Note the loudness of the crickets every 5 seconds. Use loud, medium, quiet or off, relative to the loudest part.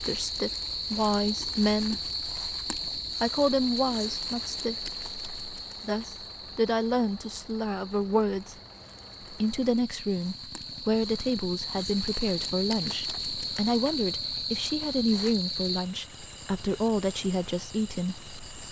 loud, medium, loud, medium.